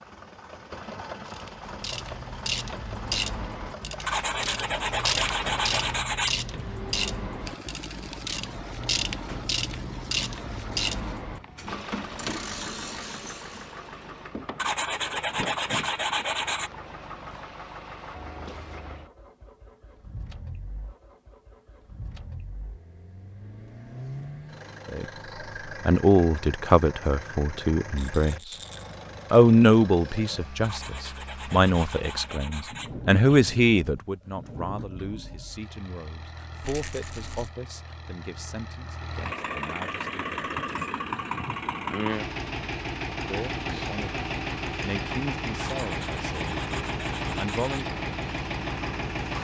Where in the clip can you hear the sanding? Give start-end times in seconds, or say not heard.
4.0-6.4, 14.6-16.7, 30.6-33.5, 45.6-47.9.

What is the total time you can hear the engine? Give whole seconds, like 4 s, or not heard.
49 s.